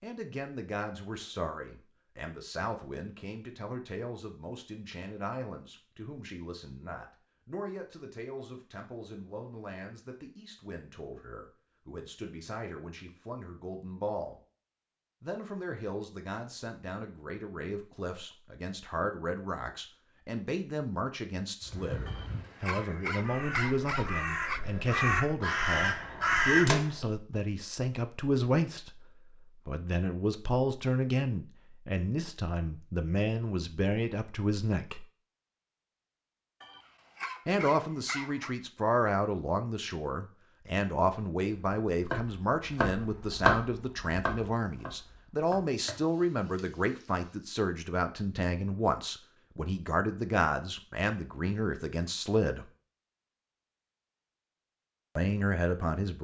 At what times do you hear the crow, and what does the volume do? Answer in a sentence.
The crow can be heard from 21.6 to 27.1 s, getting louder.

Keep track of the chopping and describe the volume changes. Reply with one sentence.
The volume of the chopping goes up, then down.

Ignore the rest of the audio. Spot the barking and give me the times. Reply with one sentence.
You can hear the barking from 22.1 to 24.6 s and from 36.6 to 38.5 s.